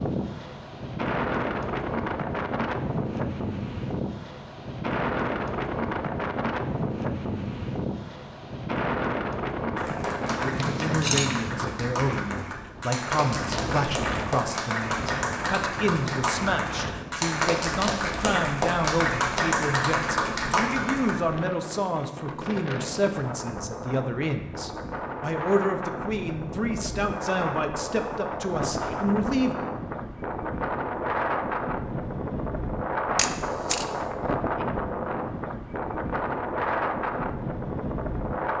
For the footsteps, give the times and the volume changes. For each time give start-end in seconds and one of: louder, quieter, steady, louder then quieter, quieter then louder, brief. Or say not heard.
not heard.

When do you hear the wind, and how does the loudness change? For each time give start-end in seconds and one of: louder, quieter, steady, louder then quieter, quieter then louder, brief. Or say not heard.
0.0-38.5 quieter then louder.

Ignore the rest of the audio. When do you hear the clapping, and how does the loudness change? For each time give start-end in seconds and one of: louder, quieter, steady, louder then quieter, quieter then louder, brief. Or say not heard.
9.8-21.1 louder.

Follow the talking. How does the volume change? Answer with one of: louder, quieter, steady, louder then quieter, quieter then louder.
steady.